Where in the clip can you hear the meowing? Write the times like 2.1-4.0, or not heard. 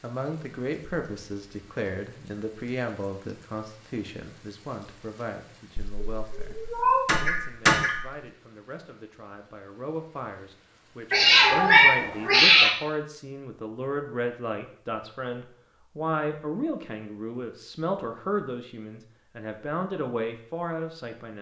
5.8-8.1, 11.1-12.7.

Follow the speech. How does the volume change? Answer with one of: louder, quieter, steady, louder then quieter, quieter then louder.
quieter then louder.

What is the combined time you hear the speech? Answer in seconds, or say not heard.
21 s.